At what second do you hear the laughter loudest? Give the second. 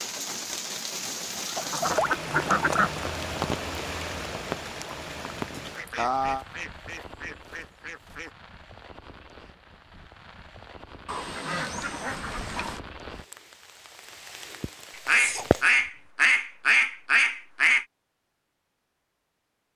6 s.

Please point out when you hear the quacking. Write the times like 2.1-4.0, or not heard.
1.6-3.0, 5.5-8.3, 11.1-12.8, 15.1-17.9.